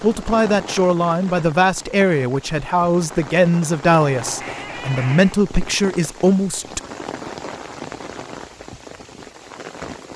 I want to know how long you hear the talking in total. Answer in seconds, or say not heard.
7 s.